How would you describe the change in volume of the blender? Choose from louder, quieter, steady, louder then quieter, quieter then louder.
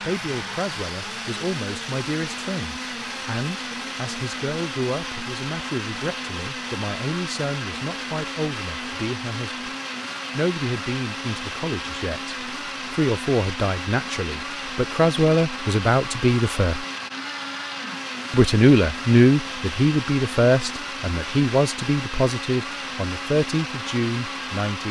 steady.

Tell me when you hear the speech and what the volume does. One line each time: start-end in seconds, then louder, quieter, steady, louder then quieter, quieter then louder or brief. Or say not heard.
0.0-9.7 steady
10.3-16.9 louder
18.3-24.8 quieter.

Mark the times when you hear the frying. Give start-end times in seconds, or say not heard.
not heard.